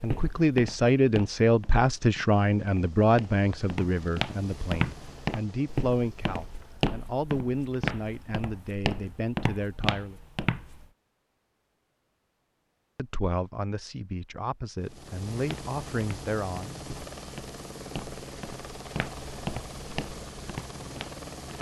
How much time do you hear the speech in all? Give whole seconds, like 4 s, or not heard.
14 s.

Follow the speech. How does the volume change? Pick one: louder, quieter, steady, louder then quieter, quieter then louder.
quieter.